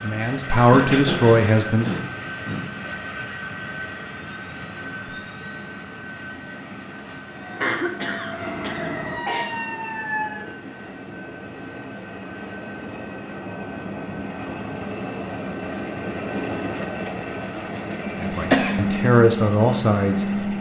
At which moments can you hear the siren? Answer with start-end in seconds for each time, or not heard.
7.4-10.4.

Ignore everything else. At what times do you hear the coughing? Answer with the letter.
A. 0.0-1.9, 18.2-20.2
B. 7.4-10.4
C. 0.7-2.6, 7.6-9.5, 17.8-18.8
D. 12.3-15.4
C.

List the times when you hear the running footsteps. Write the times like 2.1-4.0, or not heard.
not heard.